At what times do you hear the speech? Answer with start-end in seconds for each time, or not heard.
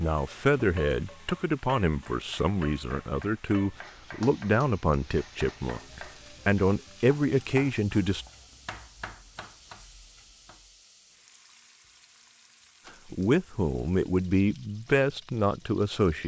0.0-8.2, 13.1-16.2.